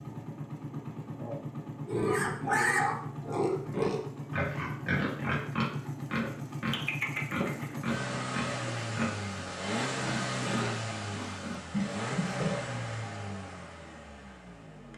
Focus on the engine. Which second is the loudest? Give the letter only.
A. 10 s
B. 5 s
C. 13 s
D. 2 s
A.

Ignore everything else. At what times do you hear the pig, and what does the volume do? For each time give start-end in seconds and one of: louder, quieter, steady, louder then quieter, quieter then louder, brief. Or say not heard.
1.9-12.6 quieter.